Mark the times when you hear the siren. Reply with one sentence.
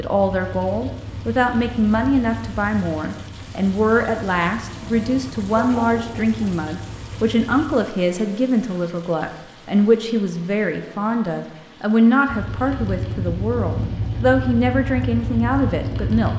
You can't hear the siren here.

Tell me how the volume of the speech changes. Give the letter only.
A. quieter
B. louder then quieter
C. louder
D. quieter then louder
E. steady
E.